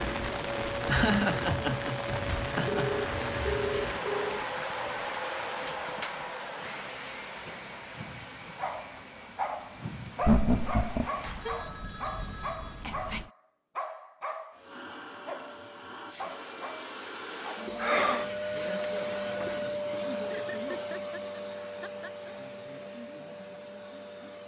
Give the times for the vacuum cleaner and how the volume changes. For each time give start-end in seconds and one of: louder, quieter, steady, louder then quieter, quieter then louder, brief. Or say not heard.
0.0-11.7 quieter
14.5-24.4 louder then quieter.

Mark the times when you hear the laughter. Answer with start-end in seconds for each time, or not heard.
0.8-3.0, 10.2-11.1, 20.1-22.4.